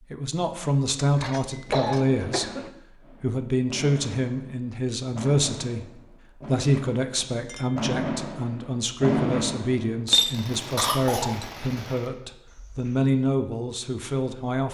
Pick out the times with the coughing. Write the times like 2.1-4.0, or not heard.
1.6-2.7, 10.8-11.4.